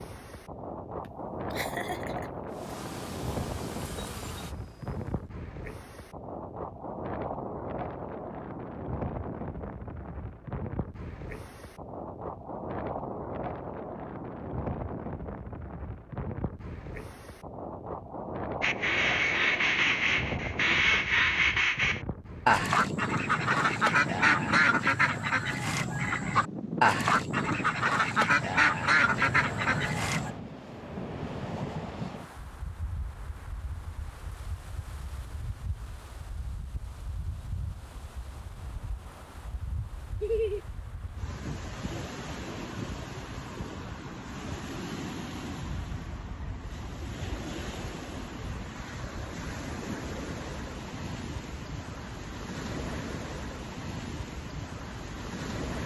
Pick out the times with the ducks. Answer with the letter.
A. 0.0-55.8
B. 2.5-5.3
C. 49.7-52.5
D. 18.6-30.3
D.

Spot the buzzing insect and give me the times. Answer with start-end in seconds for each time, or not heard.
2.5-5.3.